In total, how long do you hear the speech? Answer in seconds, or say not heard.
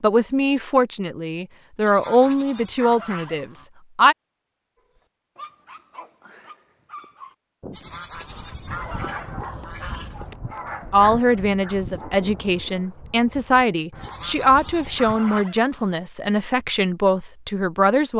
11 s.